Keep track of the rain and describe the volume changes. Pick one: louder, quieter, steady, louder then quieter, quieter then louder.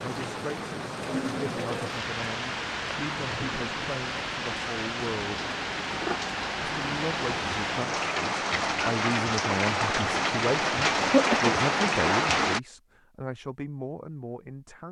louder.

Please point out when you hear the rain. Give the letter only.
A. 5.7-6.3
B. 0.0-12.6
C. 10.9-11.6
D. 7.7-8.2
B.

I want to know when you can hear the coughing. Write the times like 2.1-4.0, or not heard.
10.9-11.6.